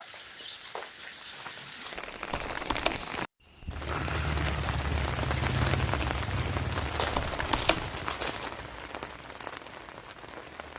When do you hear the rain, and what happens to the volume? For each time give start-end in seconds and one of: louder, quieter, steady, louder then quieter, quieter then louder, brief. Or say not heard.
0.0-10.7 louder then quieter.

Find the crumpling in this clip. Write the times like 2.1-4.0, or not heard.
0.1-2.0, 6.3-8.5.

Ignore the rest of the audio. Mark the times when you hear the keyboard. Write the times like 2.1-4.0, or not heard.
2.3-3.0, 7.1-7.9.